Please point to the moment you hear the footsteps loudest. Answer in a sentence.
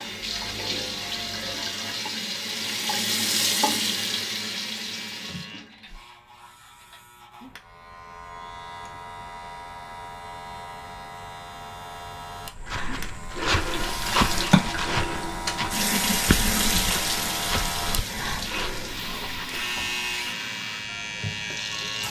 The volume of the footsteps peaks at 14 seconds.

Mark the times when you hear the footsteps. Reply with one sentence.
You can hear the footsteps from 12.4 to 19.6 s.